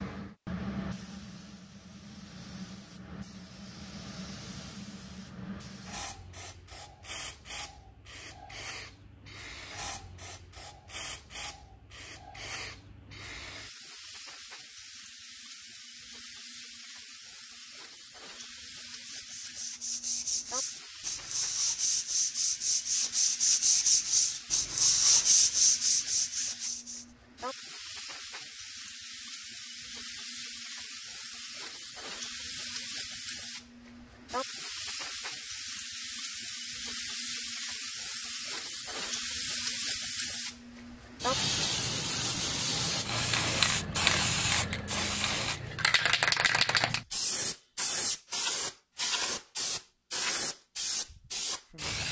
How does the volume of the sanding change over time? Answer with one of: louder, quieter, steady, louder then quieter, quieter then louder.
louder.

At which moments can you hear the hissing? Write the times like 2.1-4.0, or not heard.
0.0-52.0.